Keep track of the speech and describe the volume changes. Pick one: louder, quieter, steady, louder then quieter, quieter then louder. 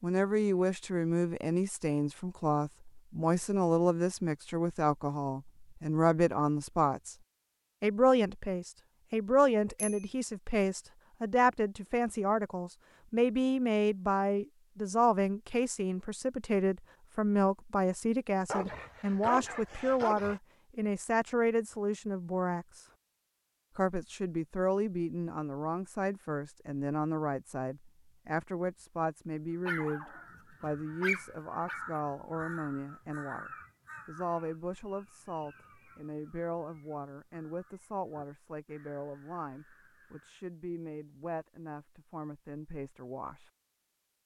quieter.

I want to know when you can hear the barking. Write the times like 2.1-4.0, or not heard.
18.4-20.4, 29.6-31.8.